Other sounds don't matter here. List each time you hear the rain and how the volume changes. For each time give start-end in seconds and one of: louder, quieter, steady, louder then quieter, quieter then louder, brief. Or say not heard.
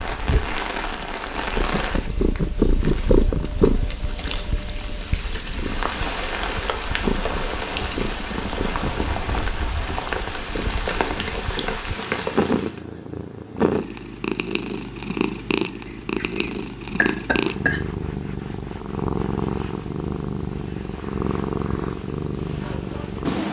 0.0-12.8 quieter then louder.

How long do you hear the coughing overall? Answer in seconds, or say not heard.
2 s.